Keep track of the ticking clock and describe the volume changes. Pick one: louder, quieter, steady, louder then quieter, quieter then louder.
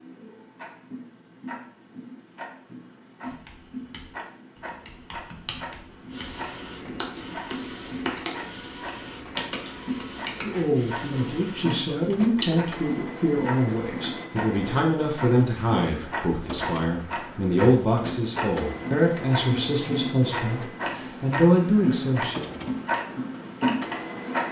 louder.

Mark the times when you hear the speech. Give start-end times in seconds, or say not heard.
10.4-22.4.